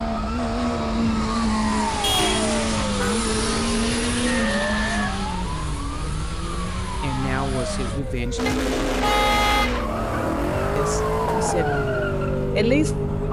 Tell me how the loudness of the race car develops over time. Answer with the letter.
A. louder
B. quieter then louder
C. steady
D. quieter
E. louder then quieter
B.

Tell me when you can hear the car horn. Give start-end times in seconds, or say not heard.
2.0-3.1, 8.4-9.8.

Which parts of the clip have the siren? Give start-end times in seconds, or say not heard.
0.0-13.2.